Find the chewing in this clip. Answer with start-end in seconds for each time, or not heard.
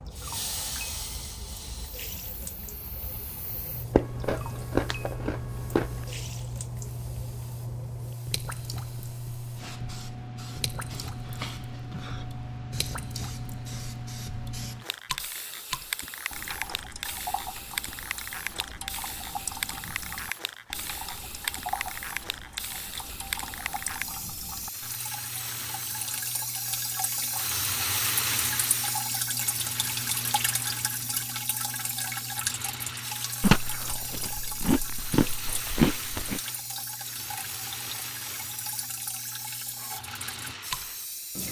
3.9-5.9, 33.4-36.4.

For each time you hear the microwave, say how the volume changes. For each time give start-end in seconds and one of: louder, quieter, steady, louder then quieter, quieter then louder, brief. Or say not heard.
not heard.